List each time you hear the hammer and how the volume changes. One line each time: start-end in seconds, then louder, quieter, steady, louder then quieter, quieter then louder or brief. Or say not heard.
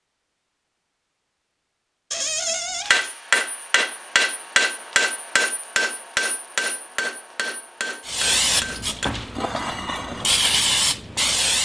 2.9-9.1 quieter.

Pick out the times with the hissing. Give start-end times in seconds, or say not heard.
8.1-11.6.